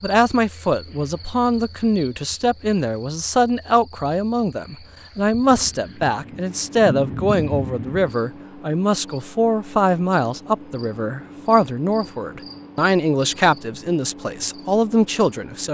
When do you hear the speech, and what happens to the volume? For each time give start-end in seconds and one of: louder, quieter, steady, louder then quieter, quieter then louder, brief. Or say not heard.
0.0-15.6 steady.